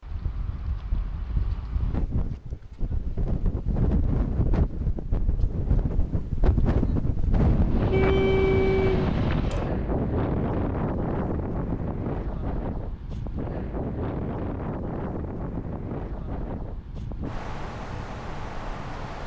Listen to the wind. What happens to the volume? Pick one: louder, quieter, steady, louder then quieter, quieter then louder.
louder then quieter.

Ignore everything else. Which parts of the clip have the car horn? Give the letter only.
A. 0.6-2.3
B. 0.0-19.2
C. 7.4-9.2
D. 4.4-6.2
C.